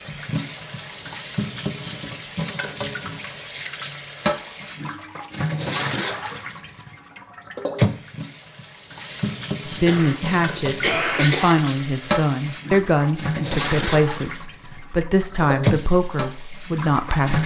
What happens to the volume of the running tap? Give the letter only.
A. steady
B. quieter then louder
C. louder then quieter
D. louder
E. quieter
A.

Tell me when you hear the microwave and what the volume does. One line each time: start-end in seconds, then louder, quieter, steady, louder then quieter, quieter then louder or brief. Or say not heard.
not heard.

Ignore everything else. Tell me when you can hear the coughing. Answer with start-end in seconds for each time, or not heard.
9.8-11.6.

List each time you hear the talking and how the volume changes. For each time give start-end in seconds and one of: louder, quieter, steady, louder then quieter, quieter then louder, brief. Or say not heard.
9.7-17.4 steady.